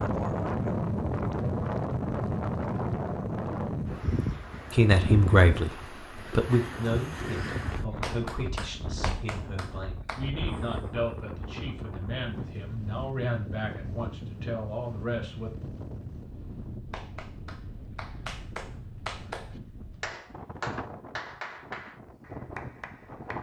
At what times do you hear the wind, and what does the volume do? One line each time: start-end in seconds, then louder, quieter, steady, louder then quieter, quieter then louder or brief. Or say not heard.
0.0-23.3 quieter.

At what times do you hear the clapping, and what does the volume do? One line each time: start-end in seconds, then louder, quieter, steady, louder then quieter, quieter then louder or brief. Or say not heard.
7.9-10.3 brief
16.9-23.3 louder then quieter.